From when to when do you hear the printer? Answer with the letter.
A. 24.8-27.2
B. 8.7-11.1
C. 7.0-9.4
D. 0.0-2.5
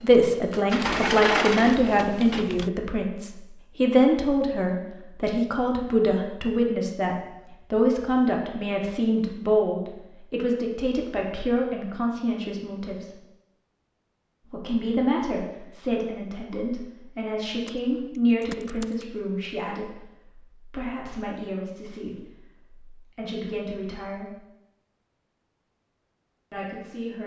D.